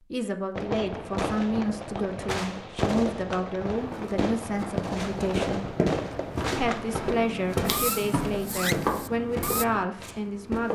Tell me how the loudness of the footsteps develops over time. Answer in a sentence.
The loudness of the footsteps goes up, then down.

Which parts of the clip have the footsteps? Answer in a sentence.
The footsteps can be heard from 3.7 to 10.7 s.